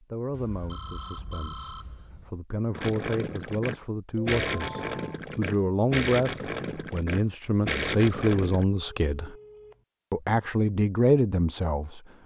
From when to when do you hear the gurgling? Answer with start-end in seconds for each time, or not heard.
2.8-8.7.